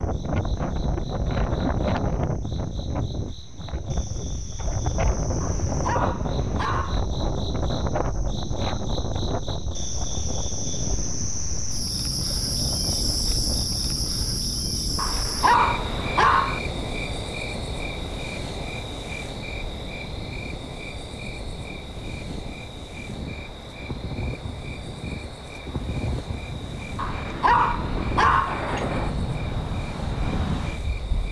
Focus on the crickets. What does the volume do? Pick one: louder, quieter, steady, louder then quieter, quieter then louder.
louder then quieter.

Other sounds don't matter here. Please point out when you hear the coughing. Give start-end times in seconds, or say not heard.
not heard.